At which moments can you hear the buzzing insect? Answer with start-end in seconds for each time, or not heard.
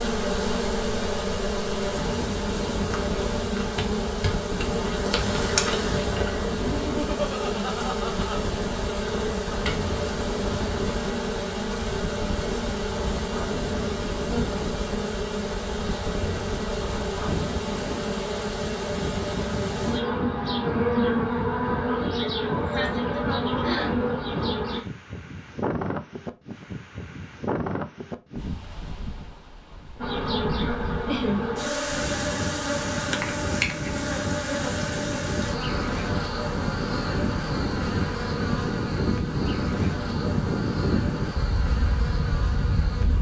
0.0-24.9, 29.9-43.1.